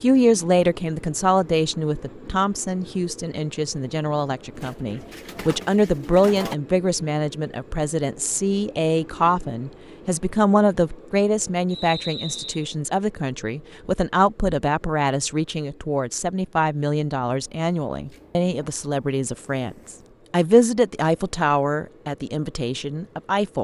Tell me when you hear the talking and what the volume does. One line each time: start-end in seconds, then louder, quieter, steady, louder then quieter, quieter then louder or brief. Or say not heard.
0.0-23.5 steady.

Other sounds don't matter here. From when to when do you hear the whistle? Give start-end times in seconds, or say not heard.
11.7-12.7.